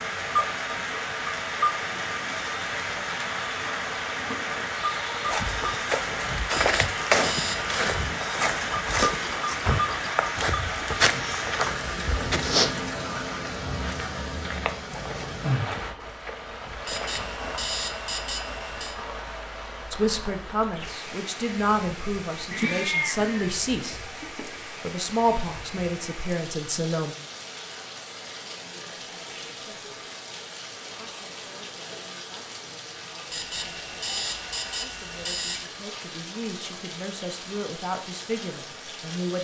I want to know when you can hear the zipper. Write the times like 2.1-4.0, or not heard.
not heard.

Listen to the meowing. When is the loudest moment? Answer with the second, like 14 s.
23 s.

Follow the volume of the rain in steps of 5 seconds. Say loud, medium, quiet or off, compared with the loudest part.
loud, loud, loud, medium, medium, medium, medium, medium.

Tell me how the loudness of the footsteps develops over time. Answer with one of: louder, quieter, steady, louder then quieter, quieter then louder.
quieter.